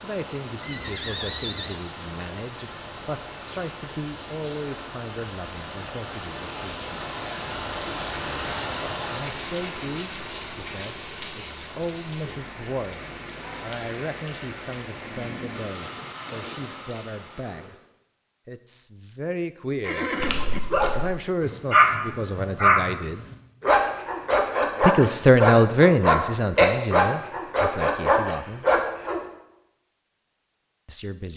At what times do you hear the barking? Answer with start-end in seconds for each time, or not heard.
20.2-29.2.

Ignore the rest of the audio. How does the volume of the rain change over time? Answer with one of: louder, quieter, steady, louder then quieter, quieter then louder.
louder then quieter.